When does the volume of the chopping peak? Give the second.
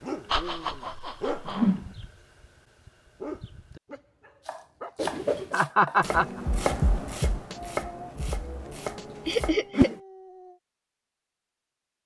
7 s.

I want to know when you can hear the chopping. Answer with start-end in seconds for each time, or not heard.
4.5-9.7.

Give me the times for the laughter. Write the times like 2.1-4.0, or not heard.
0.2-1.7, 5.5-6.4, 9.2-9.9.